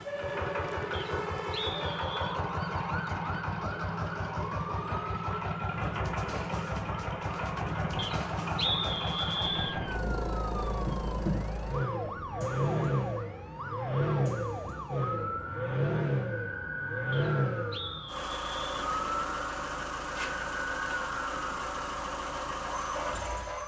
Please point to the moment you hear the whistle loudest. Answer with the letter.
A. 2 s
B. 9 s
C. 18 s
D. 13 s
B.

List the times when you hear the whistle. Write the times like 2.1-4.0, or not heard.
0.9-2.4, 8.0-9.8, 17.1-18.6.